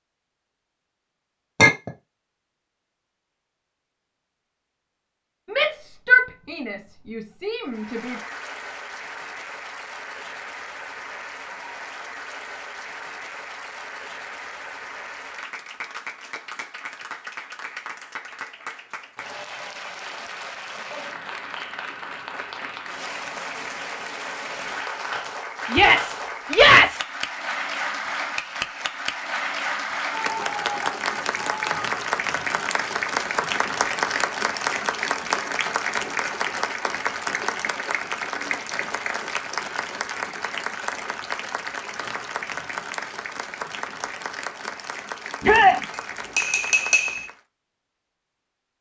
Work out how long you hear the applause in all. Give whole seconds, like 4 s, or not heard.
40 s.